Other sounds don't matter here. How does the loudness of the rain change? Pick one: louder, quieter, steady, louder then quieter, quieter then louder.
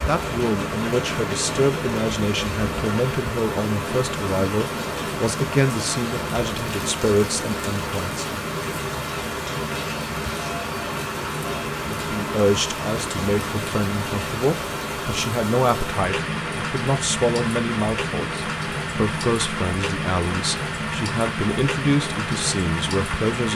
steady.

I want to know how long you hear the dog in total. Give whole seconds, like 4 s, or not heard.
not heard.